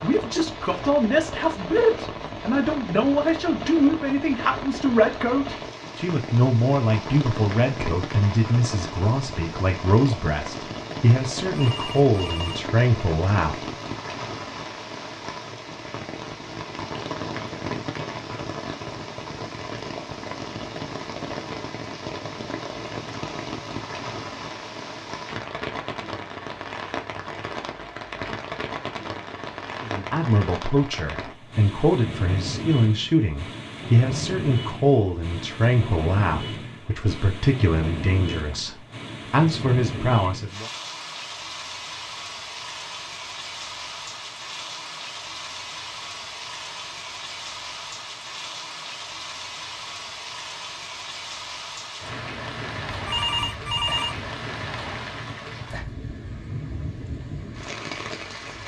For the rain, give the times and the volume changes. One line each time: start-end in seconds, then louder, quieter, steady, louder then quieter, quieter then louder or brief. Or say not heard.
0.0-58.6 steady.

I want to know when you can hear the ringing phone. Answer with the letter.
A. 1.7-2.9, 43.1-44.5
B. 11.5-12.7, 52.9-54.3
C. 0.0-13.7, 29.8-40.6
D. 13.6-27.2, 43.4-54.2
B.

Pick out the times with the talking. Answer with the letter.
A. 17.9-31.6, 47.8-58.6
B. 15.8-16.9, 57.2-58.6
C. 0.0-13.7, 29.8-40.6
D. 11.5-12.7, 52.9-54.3
C.